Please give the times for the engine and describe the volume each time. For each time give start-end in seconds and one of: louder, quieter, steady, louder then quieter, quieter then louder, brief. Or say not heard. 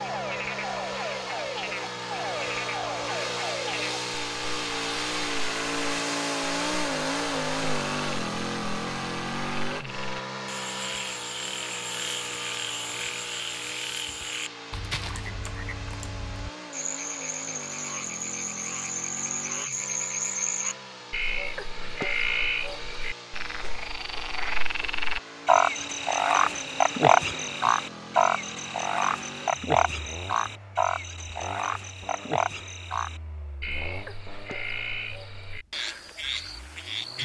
0.0-37.2 quieter.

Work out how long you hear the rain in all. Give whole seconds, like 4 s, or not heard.
not heard.